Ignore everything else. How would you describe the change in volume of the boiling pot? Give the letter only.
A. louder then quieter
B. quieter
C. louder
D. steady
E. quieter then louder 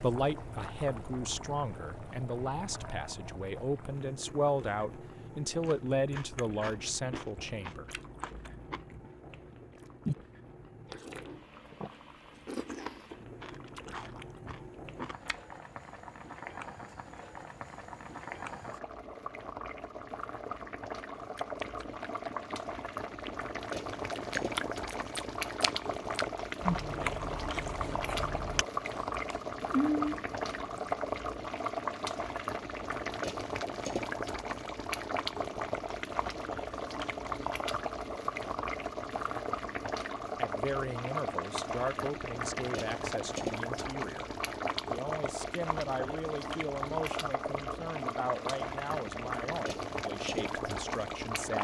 C.